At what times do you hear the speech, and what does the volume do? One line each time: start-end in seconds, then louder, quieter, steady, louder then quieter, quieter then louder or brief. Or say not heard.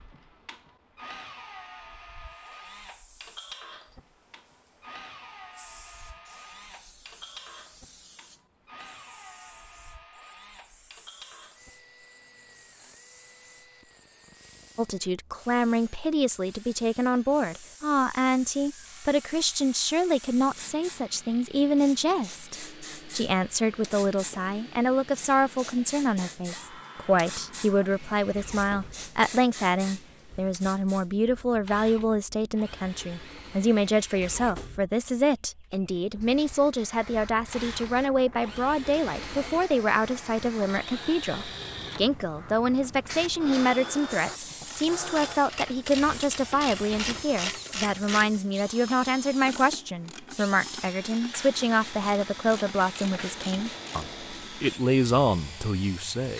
14.8-56.3 steady.